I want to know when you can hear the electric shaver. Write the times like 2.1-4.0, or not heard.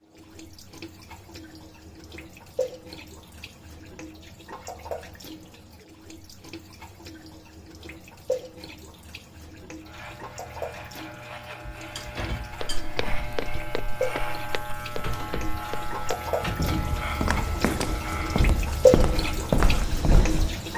9.8-20.7.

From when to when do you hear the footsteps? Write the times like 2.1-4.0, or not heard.
12.5-20.6.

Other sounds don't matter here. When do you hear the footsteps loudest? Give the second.
20 s.